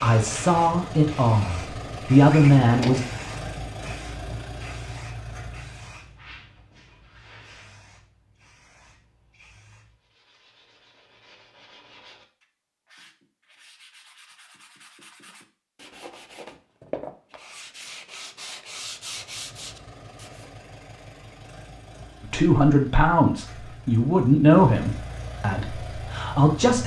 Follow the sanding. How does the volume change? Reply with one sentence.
The volume of the sanding goes up.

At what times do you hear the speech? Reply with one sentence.
You can hear the speech from 0.0 to 3.0 s and from 22.2 to 26.8 s.